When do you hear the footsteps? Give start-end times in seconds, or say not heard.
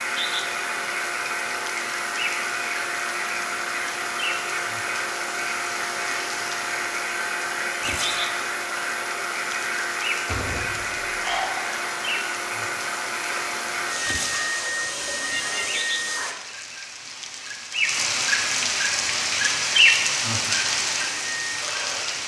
not heard.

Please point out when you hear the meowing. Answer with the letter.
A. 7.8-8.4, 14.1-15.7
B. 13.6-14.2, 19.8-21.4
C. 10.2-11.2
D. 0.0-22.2
A.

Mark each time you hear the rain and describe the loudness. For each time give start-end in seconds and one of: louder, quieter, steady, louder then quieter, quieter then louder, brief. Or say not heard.
0.0-22.2 louder.